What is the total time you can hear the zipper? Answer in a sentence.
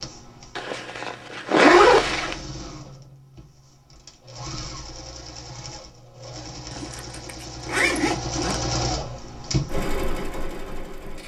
The zipper can be heard for 4 seconds in total.